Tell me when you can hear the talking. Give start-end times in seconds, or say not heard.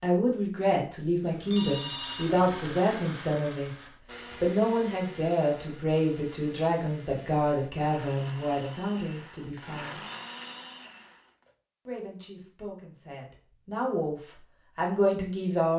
0.0-10.0, 11.8-15.7.